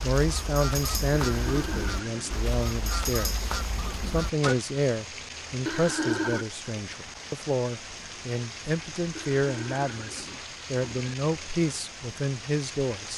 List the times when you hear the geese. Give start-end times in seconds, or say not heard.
0.0-4.5.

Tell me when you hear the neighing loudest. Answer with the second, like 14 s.
6 s.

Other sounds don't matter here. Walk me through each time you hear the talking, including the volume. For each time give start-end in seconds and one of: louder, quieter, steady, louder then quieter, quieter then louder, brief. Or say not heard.
0.0-13.1 steady.